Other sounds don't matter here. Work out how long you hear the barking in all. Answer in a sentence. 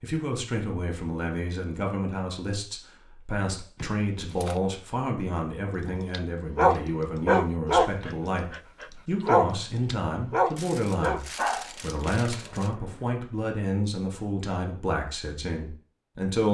You can hear the barking for 7 seconds altogether.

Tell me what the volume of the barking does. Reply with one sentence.
The volume of the barking goes down.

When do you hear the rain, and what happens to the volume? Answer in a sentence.
The rain can't be heard in this clip.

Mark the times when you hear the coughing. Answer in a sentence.
You can't hear the coughing here.